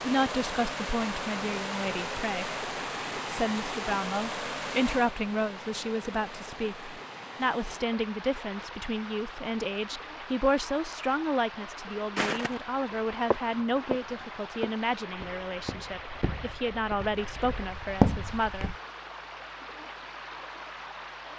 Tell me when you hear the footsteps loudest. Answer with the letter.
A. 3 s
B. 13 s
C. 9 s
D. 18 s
D.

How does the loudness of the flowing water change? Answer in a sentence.
The volume of the flowing water goes down.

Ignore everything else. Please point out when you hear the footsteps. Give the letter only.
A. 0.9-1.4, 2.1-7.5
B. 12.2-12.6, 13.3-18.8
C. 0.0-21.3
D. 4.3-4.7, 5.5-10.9
B.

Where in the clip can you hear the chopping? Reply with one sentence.
The chopping can't be heard in this clip.